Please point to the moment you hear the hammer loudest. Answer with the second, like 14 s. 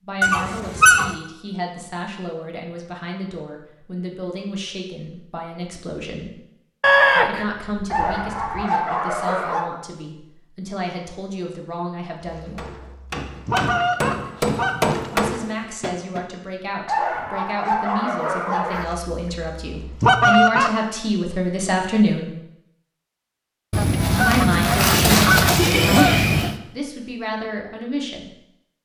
15 s.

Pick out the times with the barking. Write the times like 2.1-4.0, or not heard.
7.9-9.7, 16.9-18.9.